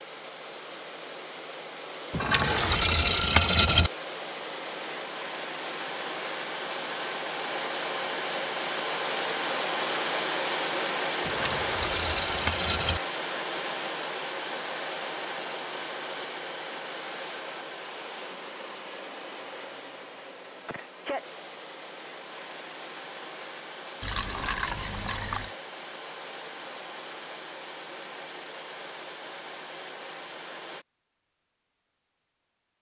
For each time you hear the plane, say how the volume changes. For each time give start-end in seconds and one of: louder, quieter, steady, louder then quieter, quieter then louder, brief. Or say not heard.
0.0-30.9 louder then quieter.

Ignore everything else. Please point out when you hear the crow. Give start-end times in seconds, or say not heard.
not heard.